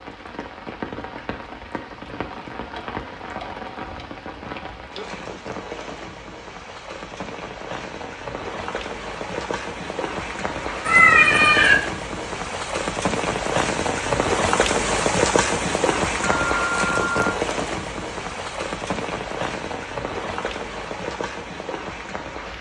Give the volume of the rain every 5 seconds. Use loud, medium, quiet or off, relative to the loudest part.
medium, medium, loud, loud, medium.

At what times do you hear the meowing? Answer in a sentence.
You can hear the meowing from 10.8 to 11.8 s.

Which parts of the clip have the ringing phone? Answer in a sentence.
The ringing phone can be heard from 16.2 to 17.4 s.